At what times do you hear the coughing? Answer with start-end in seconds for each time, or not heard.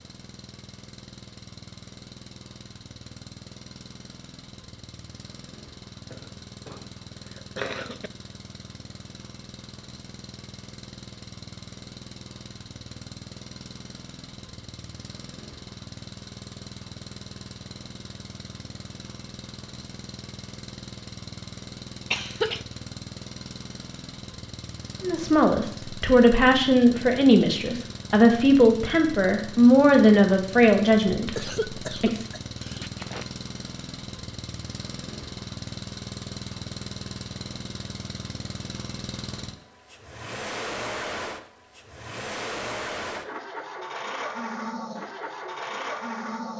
6.1-8.1, 22.1-22.6, 31.4-33.3.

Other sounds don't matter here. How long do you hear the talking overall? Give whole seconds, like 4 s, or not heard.
7 s.